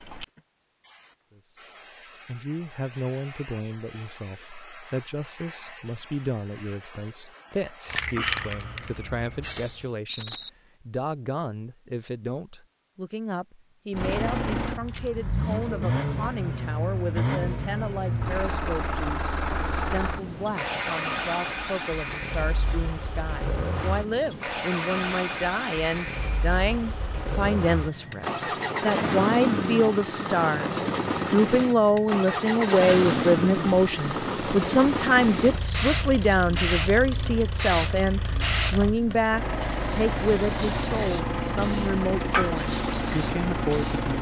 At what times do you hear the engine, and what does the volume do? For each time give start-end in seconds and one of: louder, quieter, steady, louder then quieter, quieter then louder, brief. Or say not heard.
13.9-44.1 steady.